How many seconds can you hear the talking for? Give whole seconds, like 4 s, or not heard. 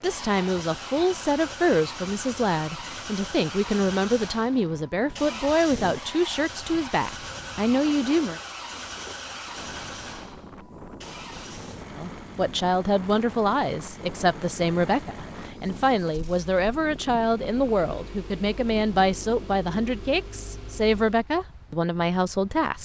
19 s.